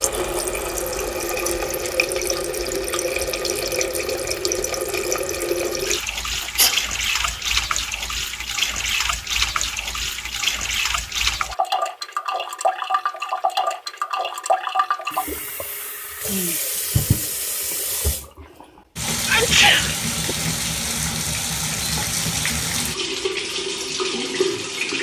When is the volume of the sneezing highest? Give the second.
20 s.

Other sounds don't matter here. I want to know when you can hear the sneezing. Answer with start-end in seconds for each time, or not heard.
6.4-7.4, 19.2-20.4.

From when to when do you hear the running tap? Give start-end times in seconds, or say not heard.
0.0-24.9.